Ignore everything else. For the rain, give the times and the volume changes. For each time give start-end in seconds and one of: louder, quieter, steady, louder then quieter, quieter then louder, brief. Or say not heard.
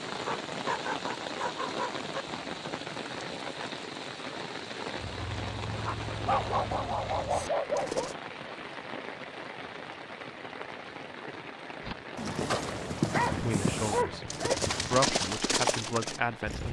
0.0-16.6 quieter.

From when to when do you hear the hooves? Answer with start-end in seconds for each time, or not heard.
5.0-8.2, 11.8-16.6.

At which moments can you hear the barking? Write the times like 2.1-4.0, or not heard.
0.2-2.2, 6.2-8.1, 13.1-15.0.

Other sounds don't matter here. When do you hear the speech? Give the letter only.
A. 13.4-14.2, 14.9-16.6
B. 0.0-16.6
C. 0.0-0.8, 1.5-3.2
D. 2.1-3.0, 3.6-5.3
A.